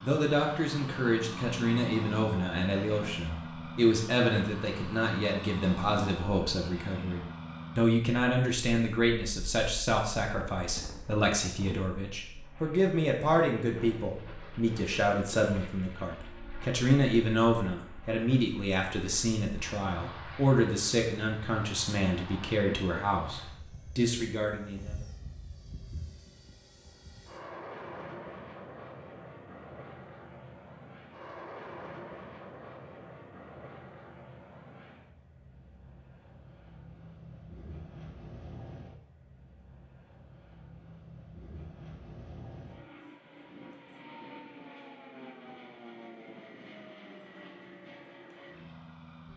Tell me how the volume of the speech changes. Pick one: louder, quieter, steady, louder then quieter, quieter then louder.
steady.